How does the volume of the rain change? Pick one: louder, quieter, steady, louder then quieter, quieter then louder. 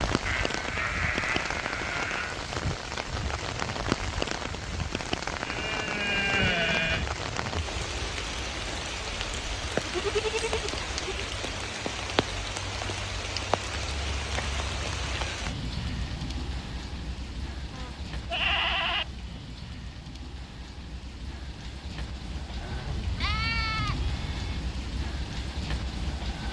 quieter.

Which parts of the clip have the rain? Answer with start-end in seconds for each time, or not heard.
0.0-26.4.